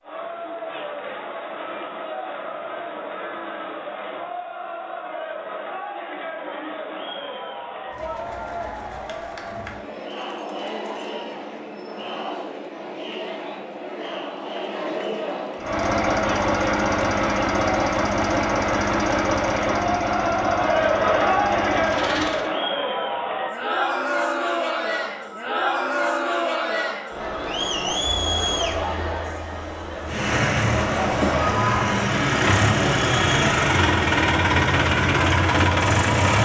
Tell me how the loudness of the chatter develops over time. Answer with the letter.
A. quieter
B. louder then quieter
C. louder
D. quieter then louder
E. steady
C.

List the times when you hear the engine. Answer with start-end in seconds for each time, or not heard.
15.6-22.5, 30.1-36.4.